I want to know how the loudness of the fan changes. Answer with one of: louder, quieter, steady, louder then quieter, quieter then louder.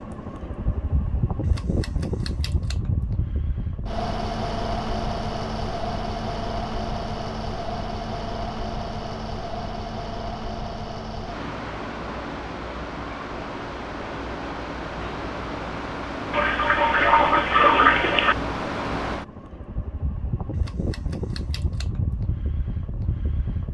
steady.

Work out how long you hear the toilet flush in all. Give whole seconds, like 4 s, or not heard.
2 s.